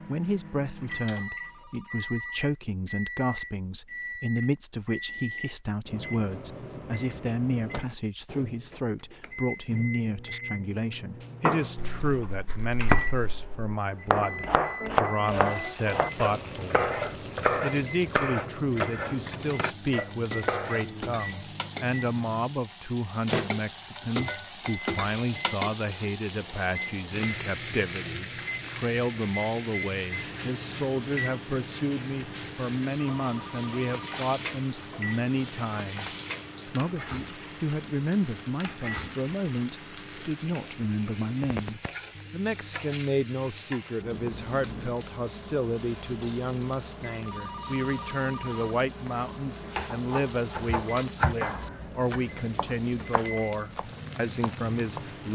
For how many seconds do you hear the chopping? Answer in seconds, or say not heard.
15 s.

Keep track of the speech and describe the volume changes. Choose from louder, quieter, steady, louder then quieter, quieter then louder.
steady.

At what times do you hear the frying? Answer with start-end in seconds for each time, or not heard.
15.2-55.2.